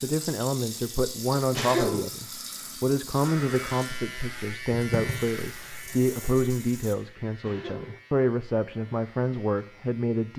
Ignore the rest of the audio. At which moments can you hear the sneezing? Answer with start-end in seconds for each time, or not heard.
1.6-2.0, 7.4-8.0.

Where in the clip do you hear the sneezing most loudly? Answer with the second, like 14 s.
2 s.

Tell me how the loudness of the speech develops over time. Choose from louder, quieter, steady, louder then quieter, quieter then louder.
steady.